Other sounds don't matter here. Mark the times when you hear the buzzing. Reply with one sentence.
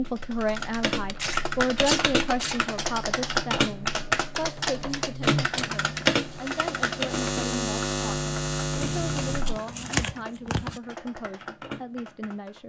You can hear the buzzing from 0.0 to 9.6 s.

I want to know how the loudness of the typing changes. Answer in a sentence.
The volume of the typing goes down.